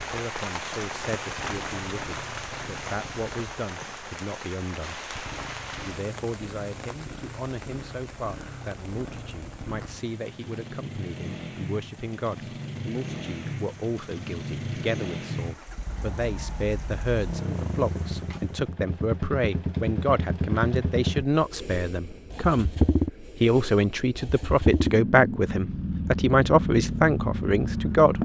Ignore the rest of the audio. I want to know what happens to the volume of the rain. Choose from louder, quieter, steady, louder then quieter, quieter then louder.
quieter.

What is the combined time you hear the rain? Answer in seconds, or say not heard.
19 s.